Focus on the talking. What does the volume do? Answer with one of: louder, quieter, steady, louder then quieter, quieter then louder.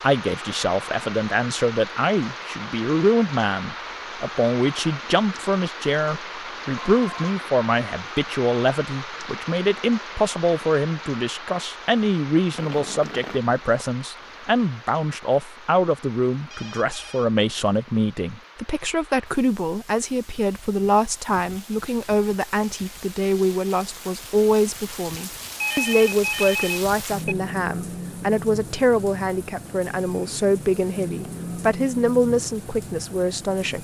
steady.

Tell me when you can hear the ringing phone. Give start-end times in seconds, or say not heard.
6.8-7.3, 16.4-17.2, 25.6-27.4.